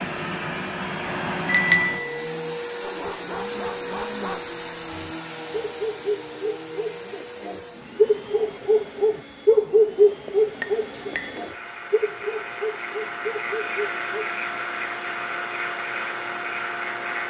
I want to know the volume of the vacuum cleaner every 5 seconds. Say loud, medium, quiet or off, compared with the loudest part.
loud, medium, loud, loud.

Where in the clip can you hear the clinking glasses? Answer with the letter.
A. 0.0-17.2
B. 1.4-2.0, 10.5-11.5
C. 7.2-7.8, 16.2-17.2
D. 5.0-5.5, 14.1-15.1
B.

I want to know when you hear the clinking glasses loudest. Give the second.
2 s.